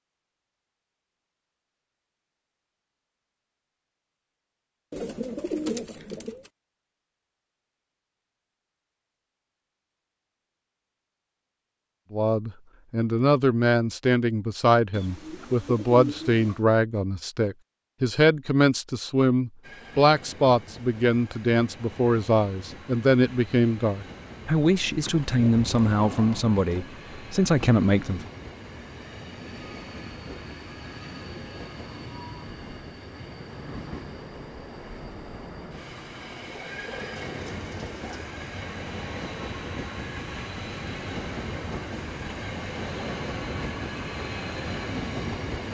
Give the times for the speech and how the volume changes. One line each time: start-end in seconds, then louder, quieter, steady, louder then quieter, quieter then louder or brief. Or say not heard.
12.1-28.2 steady.